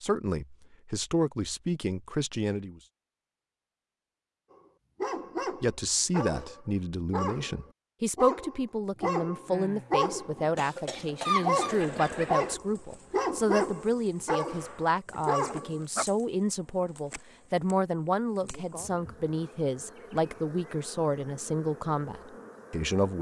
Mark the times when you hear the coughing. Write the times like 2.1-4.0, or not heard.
10.6-12.6.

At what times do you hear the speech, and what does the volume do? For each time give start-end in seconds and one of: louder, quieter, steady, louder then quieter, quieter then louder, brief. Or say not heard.
0.0-2.8 brief
5.6-23.1 steady.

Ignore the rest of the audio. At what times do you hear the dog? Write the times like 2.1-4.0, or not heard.
4.5-16.1.